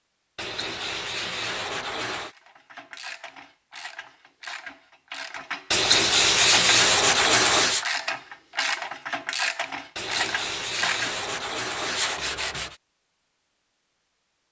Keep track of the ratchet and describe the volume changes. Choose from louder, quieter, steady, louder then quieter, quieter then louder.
louder.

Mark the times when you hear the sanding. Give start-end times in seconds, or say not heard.
0.3-2.4, 5.7-7.8, 9.9-12.8.